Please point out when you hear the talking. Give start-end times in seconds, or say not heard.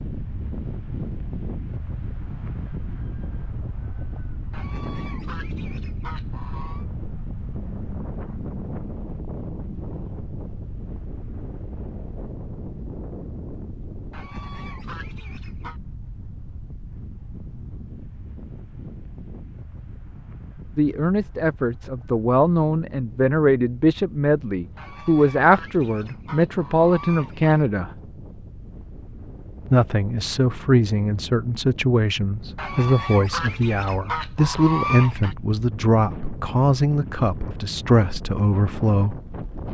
20.8-27.9, 29.6-39.2.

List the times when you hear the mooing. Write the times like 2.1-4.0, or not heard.
not heard.